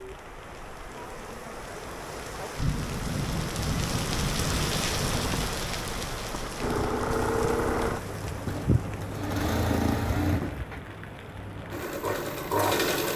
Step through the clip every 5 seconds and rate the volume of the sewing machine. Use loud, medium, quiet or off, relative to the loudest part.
off, loud, loud.